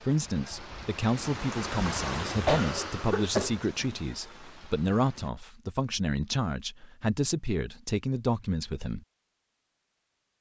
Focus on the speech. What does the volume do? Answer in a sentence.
The loudness of the speech stays about the same.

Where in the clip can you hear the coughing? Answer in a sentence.
The coughing can be heard from 2.5 to 3.6 s.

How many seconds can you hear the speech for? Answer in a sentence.
The speech can be heard for 9 seconds in total.